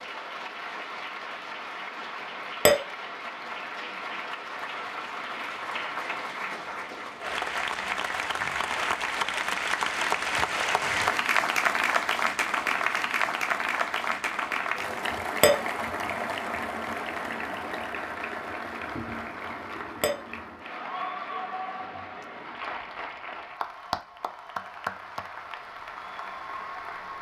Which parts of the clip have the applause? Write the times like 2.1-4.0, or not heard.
0.0-27.1.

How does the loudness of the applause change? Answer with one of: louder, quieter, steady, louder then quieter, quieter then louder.
louder then quieter.